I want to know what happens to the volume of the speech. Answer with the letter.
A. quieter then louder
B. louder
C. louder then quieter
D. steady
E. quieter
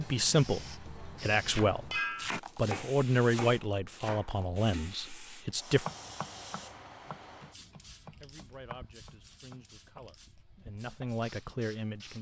A.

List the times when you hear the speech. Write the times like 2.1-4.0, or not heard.
0.0-5.8, 8.2-12.1.